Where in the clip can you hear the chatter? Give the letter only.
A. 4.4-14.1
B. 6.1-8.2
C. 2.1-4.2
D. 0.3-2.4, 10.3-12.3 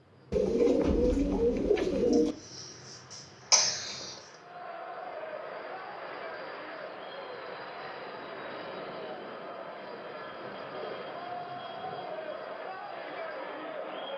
A.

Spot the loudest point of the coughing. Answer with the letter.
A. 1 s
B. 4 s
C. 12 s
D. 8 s
B.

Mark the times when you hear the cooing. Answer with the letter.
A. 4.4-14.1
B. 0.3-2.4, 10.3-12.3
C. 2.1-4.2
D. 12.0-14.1
B.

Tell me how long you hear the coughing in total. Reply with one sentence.
You can hear the coughing for 2 seconds altogether.